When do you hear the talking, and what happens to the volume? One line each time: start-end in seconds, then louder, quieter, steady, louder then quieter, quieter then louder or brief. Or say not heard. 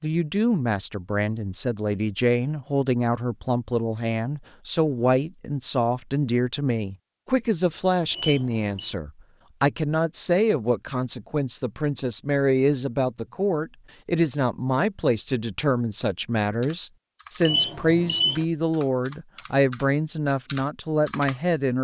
0.0-21.7 steady.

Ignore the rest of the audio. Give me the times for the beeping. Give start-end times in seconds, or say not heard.
8.1-8.9, 17.4-18.4.